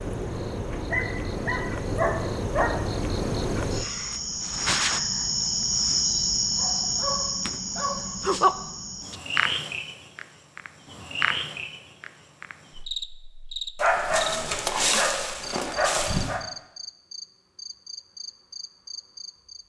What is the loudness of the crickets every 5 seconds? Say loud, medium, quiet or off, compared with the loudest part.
loud, loud, medium, quiet.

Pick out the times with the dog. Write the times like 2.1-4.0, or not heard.
0.9-2.8, 6.5-8.1, 13.8-16.4.